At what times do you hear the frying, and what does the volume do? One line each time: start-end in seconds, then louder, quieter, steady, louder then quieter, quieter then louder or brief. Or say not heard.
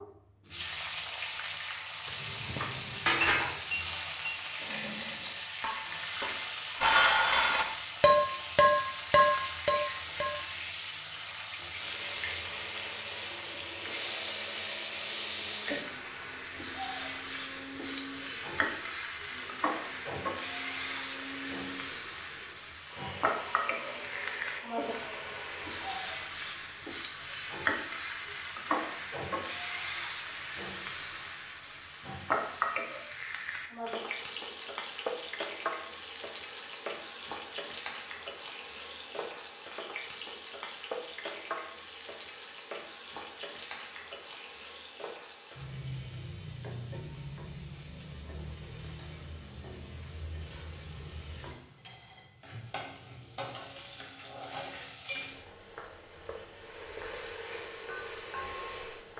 0.0-59.1 quieter.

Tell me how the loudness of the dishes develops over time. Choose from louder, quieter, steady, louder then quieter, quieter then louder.
quieter then louder.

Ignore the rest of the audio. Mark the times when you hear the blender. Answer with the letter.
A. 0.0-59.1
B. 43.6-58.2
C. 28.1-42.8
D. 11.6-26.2
D.